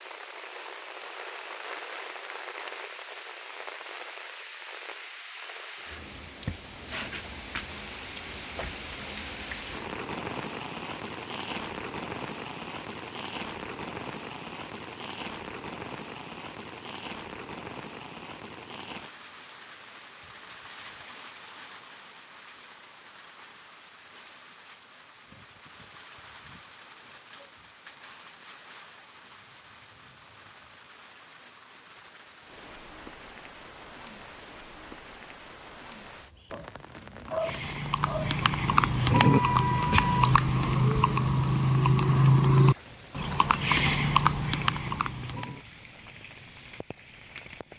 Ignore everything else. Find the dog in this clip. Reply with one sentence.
The dog can be heard from 36.5 to 38.4 s.